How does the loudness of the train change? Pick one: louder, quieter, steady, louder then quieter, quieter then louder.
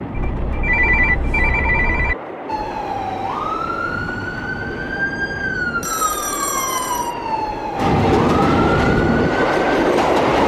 louder.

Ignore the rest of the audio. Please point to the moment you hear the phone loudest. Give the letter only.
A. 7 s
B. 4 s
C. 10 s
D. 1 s
D.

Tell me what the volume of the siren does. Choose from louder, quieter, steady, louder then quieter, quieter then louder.
steady.